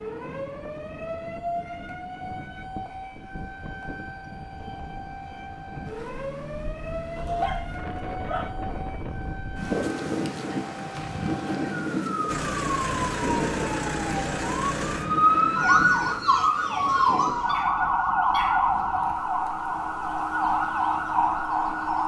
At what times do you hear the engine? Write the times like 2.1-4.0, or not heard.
12.2-16.2.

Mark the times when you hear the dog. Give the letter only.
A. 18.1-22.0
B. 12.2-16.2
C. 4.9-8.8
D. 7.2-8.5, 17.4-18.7
D.